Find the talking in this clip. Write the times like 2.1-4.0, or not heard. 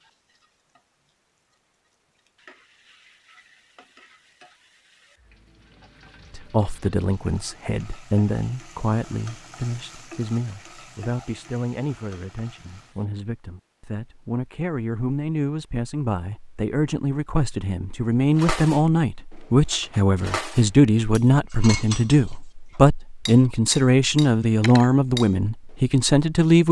6.3-26.6.